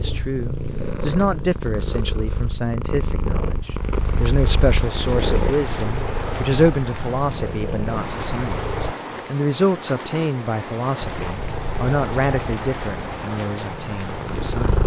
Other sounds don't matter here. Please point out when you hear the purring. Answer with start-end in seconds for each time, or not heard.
0.0-8.9, 11.0-14.8.